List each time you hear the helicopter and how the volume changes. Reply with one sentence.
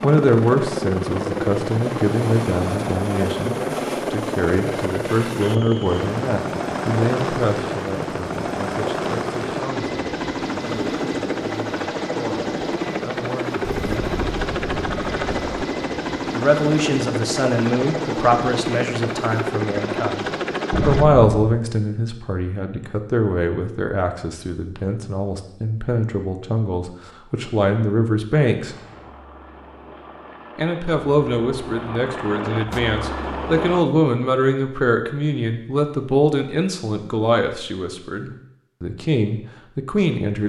The helicopter can be heard from 0.0 to 21.1 s, at a steady volume; and from 28.6 to 33.9 s, getting louder.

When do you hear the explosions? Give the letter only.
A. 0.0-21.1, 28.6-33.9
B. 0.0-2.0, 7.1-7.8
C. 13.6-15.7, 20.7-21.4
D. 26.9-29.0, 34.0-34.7
C.